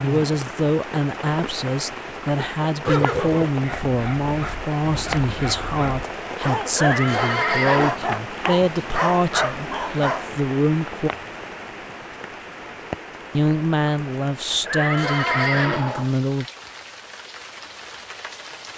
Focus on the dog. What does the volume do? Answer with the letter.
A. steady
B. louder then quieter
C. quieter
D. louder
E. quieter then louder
D.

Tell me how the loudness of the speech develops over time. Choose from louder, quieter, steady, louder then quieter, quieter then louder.
steady.